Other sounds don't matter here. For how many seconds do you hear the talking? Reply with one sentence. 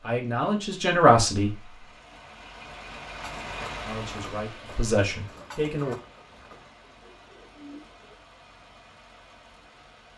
You can hear the talking for 4 seconds altogether.